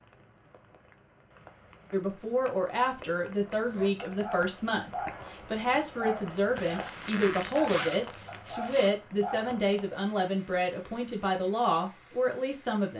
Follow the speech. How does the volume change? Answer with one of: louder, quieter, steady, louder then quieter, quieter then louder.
steady.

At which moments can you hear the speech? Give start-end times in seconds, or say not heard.
1.9-12.9.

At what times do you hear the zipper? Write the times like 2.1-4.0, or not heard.
6.5-8.9.